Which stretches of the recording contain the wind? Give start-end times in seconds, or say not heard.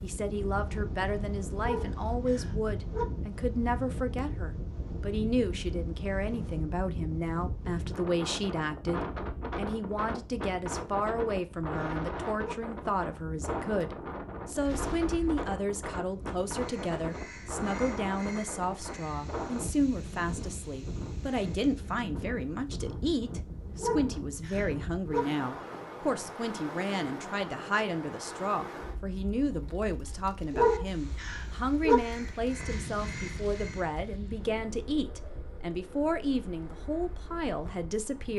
0.0-38.3.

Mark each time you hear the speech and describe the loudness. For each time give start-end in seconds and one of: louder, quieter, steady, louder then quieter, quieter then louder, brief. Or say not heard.
0.0-38.3 steady.